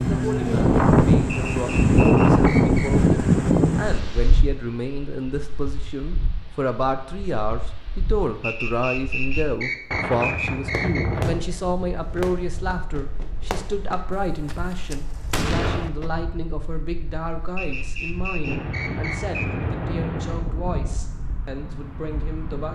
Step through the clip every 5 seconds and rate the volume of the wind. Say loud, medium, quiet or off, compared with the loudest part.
loud, quiet, quiet, quiet, quiet.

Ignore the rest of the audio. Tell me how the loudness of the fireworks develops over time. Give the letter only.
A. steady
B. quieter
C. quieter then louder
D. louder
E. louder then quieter
C.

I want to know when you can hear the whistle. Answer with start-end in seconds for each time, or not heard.
1.2-2.9, 8.4-11.2, 17.6-19.6.